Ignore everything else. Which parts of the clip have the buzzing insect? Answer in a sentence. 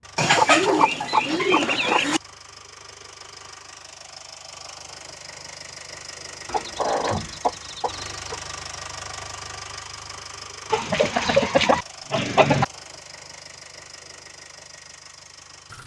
You can't hear the buzzing insect here.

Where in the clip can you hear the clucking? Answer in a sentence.
You can hear the clucking from 0.1 to 2.2 s, from 6.5 to 8.6 s and from 10.7 to 12.7 s.